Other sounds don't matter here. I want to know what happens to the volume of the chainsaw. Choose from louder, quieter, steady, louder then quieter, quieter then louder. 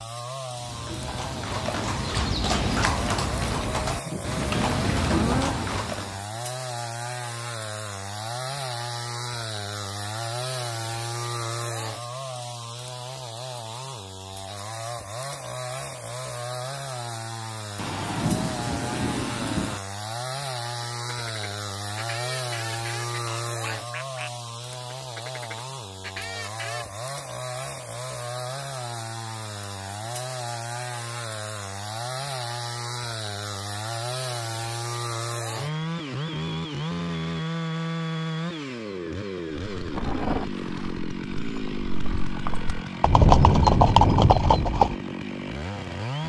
steady.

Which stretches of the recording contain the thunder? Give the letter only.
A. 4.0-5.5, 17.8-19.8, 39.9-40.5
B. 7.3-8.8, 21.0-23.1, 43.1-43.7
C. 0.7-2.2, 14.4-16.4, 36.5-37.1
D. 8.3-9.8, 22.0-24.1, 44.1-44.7
A.